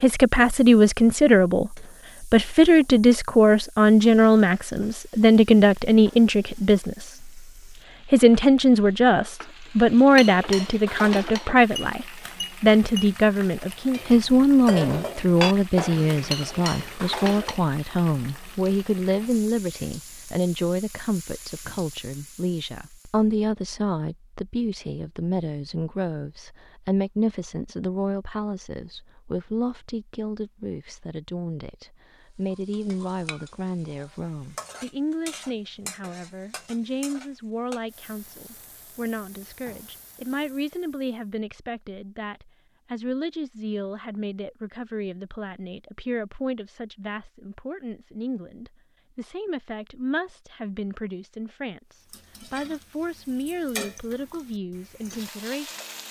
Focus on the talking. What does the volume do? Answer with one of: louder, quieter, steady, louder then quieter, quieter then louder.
quieter.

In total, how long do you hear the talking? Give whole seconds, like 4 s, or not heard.
55 s.